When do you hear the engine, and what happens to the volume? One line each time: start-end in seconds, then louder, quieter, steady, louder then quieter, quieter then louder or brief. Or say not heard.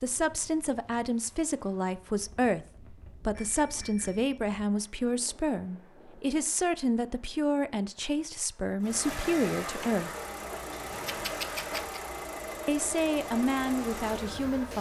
8.8-14.7 steady.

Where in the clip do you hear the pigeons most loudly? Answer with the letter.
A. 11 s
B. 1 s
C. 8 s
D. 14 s
A.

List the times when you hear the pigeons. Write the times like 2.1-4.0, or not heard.
9.8-12.0.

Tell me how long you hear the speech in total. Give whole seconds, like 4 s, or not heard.
12 s.